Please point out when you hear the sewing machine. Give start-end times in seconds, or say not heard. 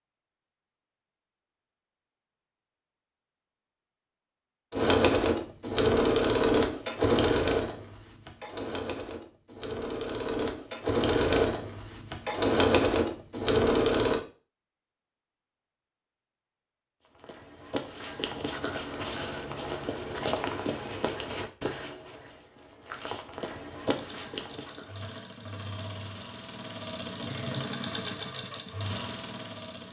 4.7-14.2, 23.8-29.8.